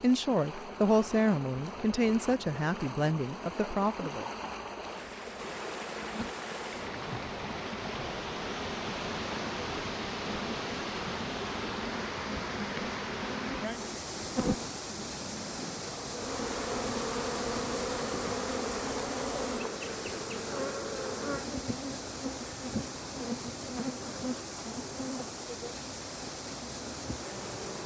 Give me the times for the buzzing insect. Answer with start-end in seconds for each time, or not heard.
0.0-27.8.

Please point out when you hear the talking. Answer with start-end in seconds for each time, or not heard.
0.0-4.3.